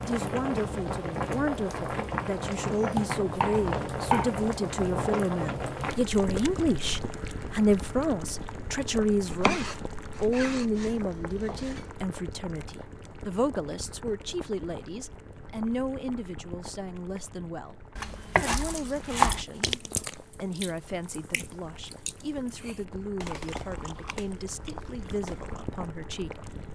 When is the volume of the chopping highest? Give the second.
19 s.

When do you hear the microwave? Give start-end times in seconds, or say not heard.
not heard.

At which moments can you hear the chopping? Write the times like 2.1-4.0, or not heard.
2.9-4.3, 9.2-11.9, 17.9-19.4.